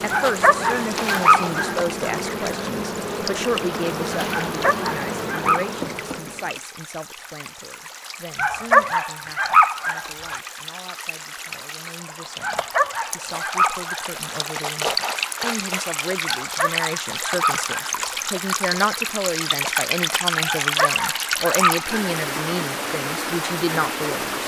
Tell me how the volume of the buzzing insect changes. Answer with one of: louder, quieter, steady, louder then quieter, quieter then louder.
steady.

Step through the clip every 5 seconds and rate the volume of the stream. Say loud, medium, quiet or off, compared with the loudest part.
medium, quiet, medium, loud, loud.